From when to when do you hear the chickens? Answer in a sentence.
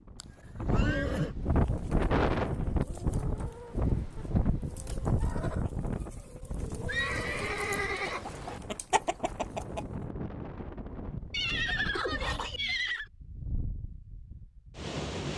You can hear the chickens from 1.4 to 10.0 s.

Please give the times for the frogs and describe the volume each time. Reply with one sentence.
The frogs can't be heard in this clip.